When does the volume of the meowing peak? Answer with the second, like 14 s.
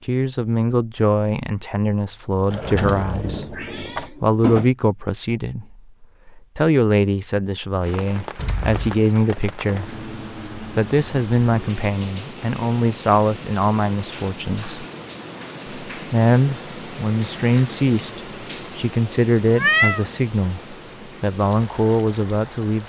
20 s.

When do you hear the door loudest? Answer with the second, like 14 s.
3 s.